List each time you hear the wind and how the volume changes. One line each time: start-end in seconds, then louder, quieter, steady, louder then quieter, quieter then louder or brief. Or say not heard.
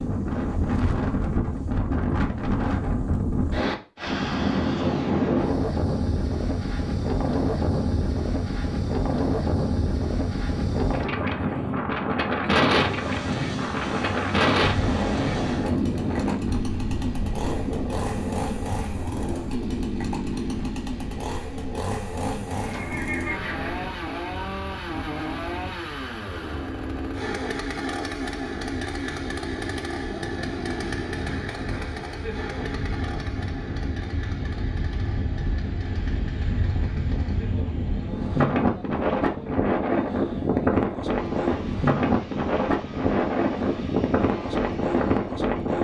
0.0-45.7 quieter then louder.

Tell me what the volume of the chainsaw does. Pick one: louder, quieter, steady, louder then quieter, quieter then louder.
quieter.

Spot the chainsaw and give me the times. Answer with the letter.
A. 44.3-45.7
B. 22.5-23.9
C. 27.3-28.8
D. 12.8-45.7
D.